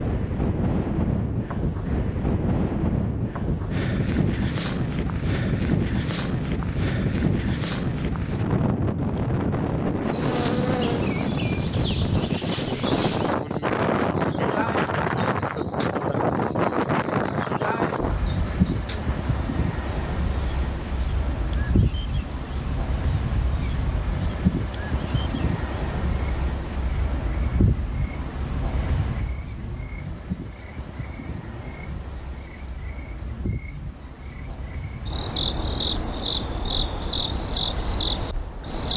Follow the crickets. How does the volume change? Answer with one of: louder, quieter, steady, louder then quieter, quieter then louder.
steady.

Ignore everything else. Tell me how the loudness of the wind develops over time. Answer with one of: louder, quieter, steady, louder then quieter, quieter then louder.
quieter.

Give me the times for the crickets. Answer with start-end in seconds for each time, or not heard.
10.1-38.9.